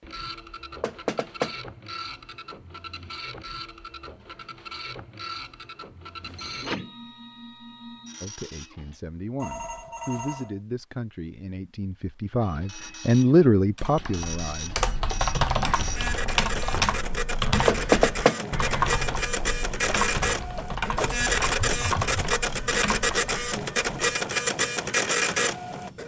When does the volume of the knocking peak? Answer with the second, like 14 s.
18 s.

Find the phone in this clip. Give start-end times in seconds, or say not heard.
6.2-6.8, 9.4-10.6, 21.6-22.2.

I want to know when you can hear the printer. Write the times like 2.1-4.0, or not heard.
0.0-8.9, 12.4-26.0.